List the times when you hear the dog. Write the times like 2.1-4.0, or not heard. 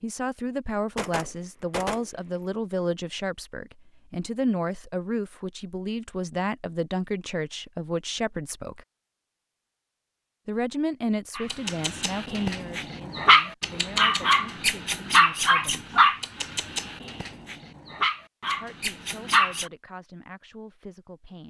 11.3-19.6.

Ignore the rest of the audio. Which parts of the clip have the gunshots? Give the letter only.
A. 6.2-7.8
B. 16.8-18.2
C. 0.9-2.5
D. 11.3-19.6
C.